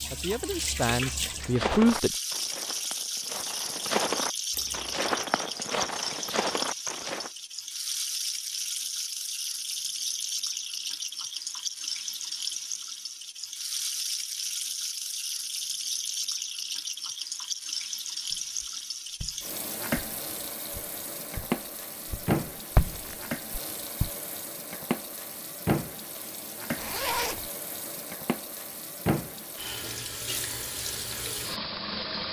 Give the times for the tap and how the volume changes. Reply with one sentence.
You can hear the tap from 0.0 to 32.2 s, at a steady volume.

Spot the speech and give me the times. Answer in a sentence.
The speech can be heard from 0.1 to 2.1 s.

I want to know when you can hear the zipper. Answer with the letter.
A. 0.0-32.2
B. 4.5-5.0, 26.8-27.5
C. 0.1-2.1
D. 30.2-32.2
B.